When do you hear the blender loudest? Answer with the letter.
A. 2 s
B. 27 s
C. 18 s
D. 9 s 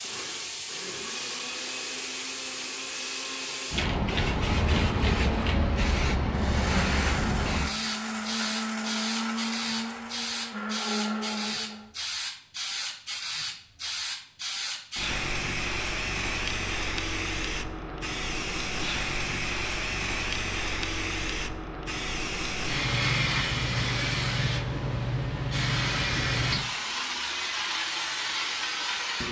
D.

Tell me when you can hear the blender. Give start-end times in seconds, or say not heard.
0.0-11.9.